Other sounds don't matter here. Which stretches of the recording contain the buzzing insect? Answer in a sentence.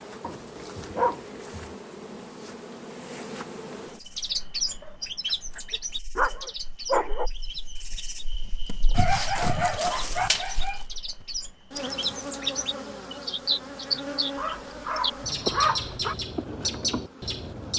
The buzzing insect can be heard from 0.0 to 17.7 s.